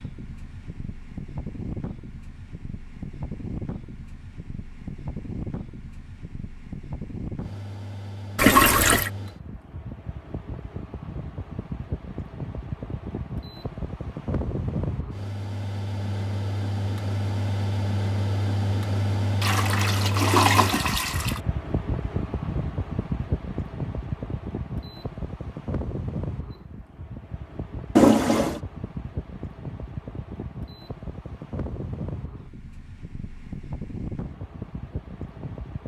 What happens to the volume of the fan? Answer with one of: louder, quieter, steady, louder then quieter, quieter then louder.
louder then quieter.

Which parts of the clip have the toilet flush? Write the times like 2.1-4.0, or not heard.
8.3-9.1, 19.4-21.4, 27.9-28.6.